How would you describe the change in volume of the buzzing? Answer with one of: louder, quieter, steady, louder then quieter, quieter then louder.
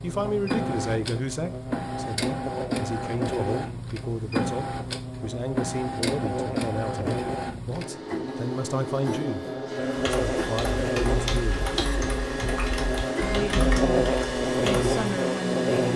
louder.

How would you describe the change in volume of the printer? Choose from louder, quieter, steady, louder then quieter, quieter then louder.
steady.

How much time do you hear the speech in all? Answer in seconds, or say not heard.
14 s.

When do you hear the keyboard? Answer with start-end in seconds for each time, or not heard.
9.9-14.9.